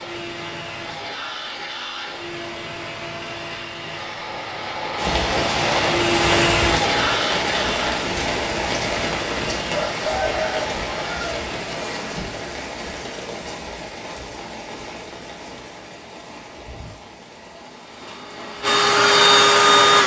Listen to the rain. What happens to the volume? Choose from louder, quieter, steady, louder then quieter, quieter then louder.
quieter.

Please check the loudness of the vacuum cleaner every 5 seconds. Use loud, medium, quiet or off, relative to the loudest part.
quiet, medium, quiet, loud.